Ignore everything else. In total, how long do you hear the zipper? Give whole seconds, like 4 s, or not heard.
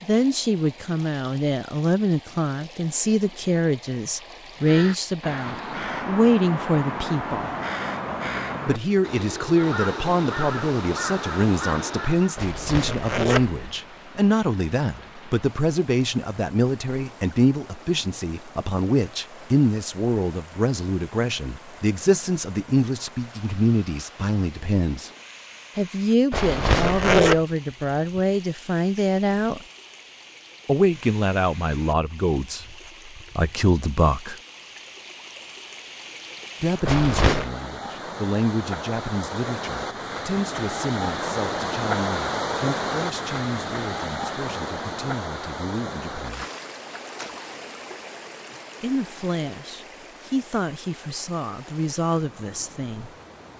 3 s.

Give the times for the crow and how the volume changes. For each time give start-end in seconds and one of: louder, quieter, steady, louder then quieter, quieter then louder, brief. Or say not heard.
4.5-12.4 steady.